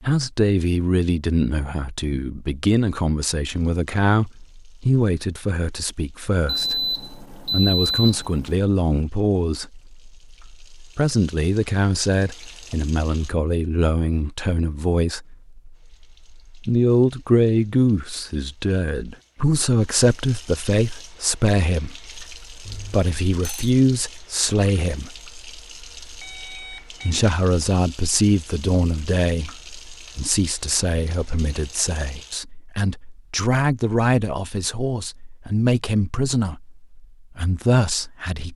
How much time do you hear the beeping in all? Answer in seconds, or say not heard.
4 s.